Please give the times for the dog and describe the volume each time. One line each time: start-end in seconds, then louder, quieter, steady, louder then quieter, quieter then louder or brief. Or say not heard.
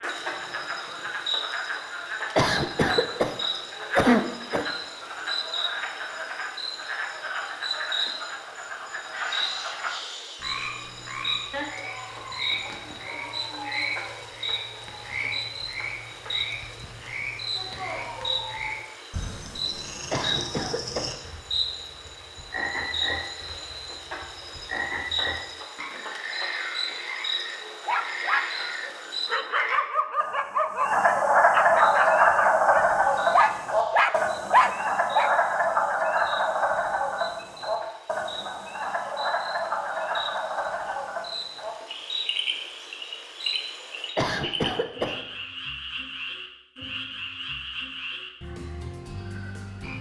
27.9-35.3 louder.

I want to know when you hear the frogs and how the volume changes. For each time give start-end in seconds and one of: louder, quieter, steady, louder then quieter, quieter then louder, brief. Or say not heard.
0.0-49.9 louder then quieter.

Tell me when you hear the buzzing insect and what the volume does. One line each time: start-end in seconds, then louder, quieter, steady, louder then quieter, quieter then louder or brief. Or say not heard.
0.0-29.4 steady
31.8-44.1 louder.